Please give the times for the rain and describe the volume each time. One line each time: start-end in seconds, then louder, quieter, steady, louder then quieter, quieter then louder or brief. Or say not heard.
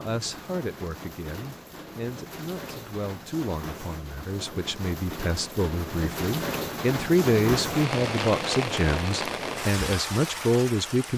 0.0-11.1 louder.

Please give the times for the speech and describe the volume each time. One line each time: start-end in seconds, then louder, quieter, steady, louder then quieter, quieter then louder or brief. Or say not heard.
0.0-11.1 louder.